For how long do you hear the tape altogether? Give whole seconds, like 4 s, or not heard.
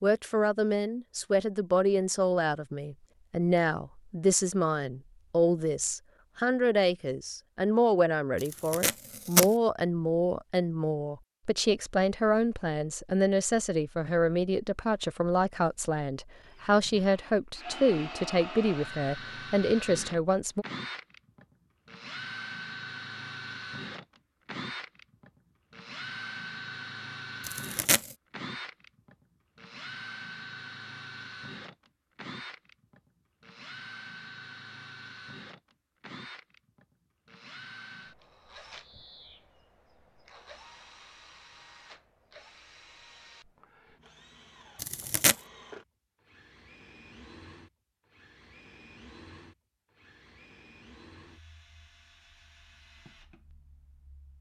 2 s.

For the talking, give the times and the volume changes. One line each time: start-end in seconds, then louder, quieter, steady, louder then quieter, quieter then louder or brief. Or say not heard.
0.0-20.6 steady.